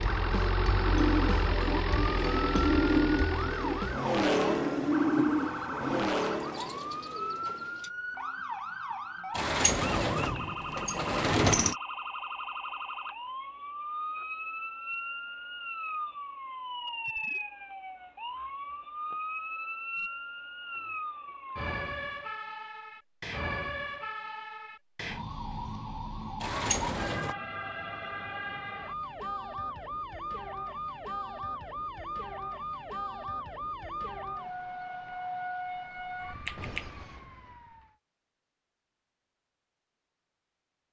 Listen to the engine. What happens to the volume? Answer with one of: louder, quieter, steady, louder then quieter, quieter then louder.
steady.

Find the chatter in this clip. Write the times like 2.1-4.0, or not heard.
not heard.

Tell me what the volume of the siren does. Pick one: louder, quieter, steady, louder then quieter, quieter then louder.
steady.